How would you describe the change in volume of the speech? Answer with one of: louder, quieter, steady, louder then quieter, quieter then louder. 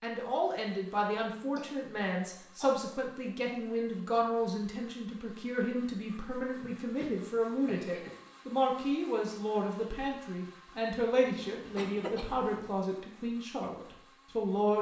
steady.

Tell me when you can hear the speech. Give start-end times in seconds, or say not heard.
0.0-14.7.